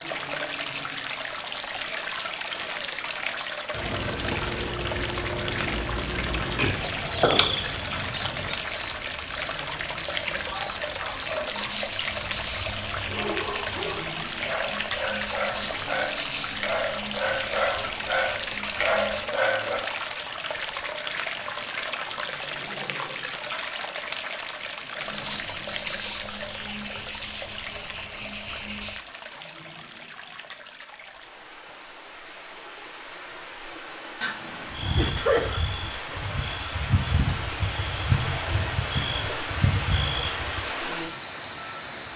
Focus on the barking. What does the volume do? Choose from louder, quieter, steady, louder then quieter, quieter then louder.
louder.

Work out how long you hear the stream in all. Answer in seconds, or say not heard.
42 s.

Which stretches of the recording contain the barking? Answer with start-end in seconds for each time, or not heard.
10.4-19.8.